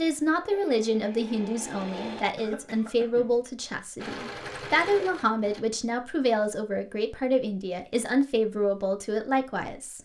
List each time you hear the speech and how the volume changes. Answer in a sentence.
The speech can be heard from 0.0 to 10.0 s, at a steady volume.